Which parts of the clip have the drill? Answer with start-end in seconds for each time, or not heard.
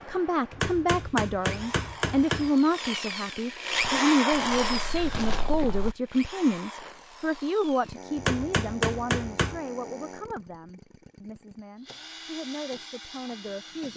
0.0-13.9.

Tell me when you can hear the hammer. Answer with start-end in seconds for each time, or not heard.
0.5-2.5, 8.2-9.6.